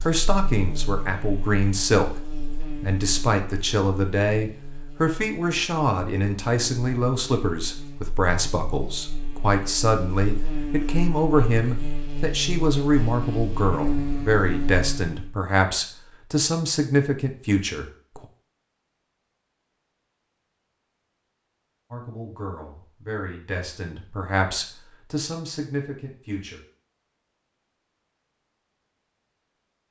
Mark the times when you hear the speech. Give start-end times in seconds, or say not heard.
0.1-18.2, 21.9-26.6.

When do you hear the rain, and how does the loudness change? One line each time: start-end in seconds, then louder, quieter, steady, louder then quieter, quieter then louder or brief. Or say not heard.
not heard.